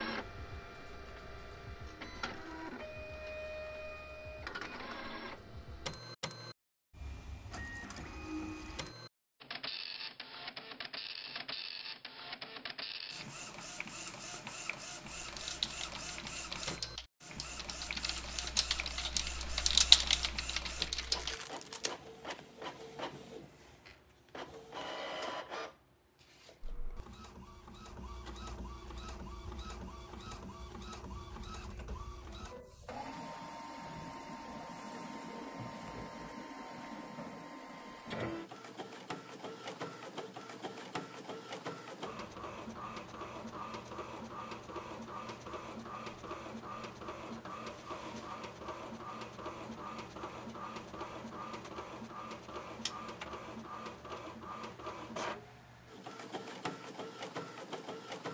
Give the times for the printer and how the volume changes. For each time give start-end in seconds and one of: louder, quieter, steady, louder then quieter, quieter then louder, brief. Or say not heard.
0.0-58.3 steady.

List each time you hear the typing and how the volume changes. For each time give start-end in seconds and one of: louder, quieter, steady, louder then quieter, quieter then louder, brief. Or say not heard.
15.2-21.4 louder.